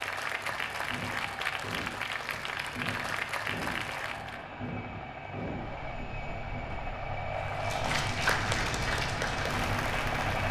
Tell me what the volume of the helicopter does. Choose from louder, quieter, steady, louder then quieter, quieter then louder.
louder.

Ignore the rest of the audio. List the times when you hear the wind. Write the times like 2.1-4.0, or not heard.
0.1-10.4.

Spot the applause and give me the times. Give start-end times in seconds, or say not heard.
0.0-4.5, 7.3-10.4.